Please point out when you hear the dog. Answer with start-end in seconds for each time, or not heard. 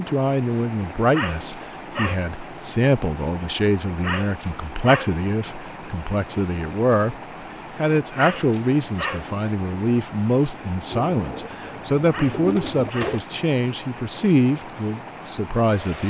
1.1-2.2, 4.0-5.2, 8.2-9.3, 12.1-13.2.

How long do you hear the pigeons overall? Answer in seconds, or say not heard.
2 s.